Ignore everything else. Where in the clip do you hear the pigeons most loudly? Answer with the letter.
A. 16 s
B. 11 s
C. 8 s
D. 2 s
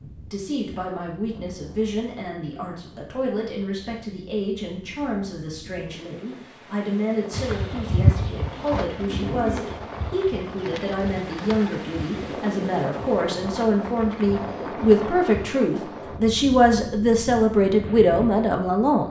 C.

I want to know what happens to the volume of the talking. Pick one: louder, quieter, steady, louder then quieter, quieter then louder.
louder.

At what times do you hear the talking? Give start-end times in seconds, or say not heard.
0.3-19.0.